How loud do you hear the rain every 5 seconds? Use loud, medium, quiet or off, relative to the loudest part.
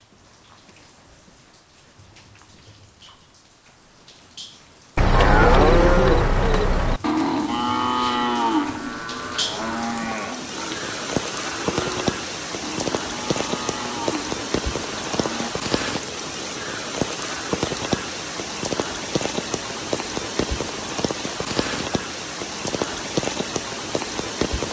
quiet, medium, loud, loud, loud.